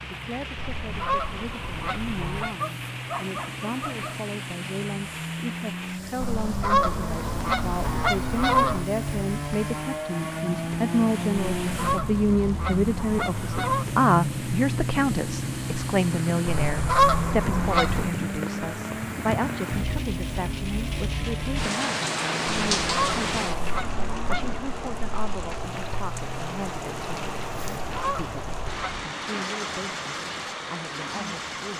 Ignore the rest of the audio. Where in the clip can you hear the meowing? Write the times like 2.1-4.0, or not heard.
not heard.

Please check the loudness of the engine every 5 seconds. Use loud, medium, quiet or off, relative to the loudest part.
medium, loud, loud, loud, medium, medium, medium.